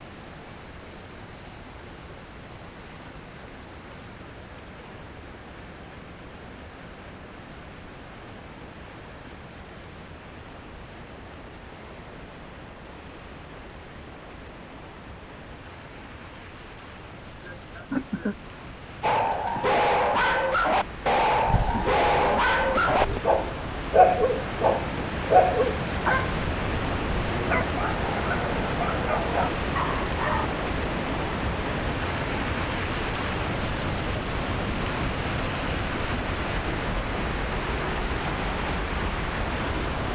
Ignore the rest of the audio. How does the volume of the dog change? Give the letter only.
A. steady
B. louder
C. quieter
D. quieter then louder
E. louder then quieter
C.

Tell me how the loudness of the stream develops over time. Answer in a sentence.
The loudness of the stream goes up.